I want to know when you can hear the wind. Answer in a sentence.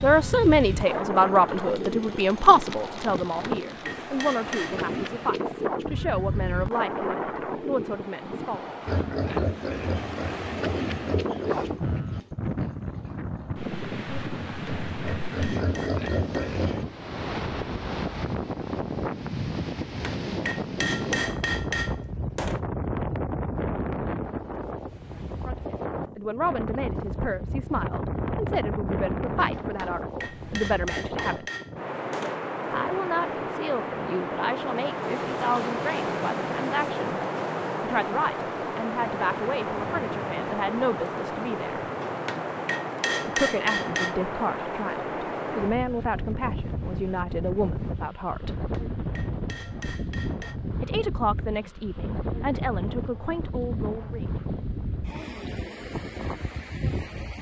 The wind can be heard from 0.0 to 57.3 s.